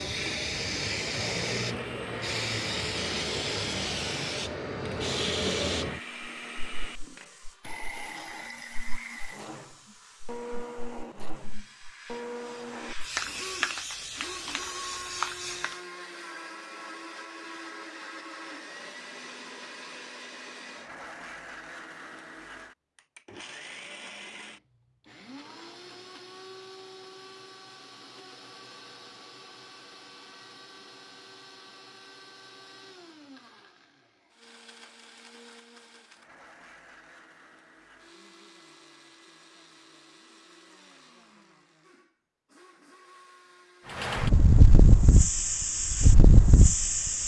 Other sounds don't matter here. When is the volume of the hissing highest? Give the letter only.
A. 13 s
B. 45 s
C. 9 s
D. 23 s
B.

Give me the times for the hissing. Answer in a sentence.
You can hear the hissing from 0.0 to 15.8 s and from 44.0 to 47.2 s.